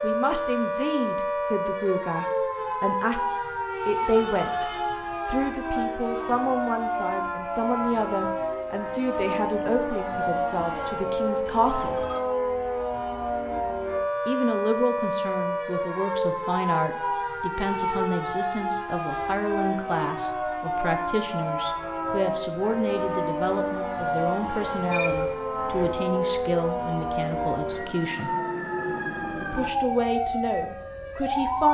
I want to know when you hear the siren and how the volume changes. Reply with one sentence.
The siren can be heard from 0.0 to 31.6 s, at a steady volume.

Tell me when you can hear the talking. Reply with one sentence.
The talking can be heard from 0.0 to 4.7 s, from 5.2 to 12.1 s, from 14.2 to 28.3 s and from 29.4 to 31.6 s.